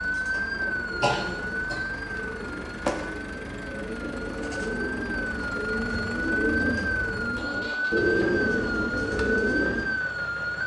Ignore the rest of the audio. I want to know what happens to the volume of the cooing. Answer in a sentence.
The loudness of the cooing goes up.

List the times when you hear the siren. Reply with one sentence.
You can hear the siren from 0.0 to 10.6 s.